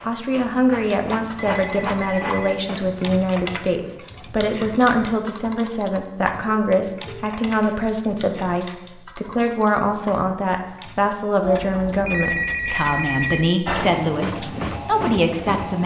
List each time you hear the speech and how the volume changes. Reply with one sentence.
The speech can be heard from 0.0 to 15.8 s, at a steady volume.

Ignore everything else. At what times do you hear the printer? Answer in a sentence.
The printer can be heard from 0.0 to 4.3 s and from 13.7 to 15.8 s.